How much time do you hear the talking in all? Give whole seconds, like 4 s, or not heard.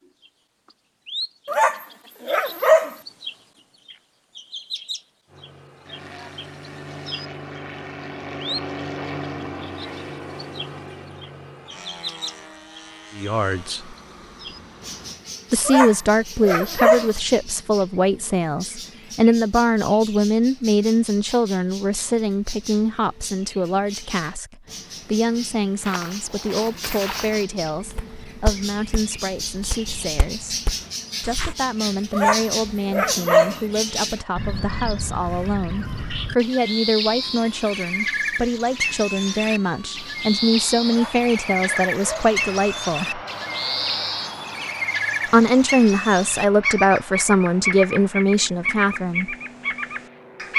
32 s.